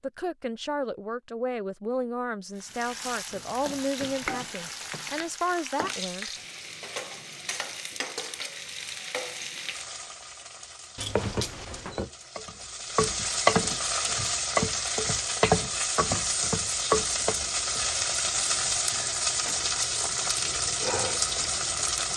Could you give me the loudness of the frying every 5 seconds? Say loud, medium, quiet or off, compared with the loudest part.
medium, medium, loud, loud, loud.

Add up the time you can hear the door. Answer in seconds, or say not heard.
3 s.